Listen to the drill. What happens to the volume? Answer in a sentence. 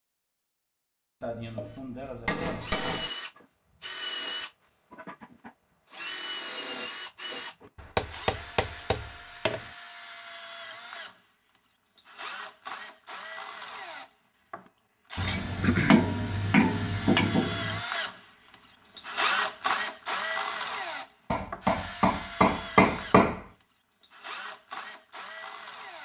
The volume of the drill goes up, then down.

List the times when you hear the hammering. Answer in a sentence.
You can hear the hammering from 1.2 to 3.1 s, from 7.8 to 9.7 s, from 15.2 to 17.8 s and from 21.3 to 23.4 s.